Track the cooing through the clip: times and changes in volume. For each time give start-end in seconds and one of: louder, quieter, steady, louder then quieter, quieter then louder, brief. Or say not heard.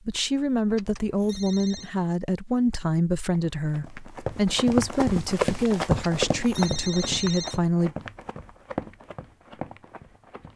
not heard.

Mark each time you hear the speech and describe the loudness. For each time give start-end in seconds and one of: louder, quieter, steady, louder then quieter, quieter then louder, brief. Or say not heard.
0.1-8.0 steady.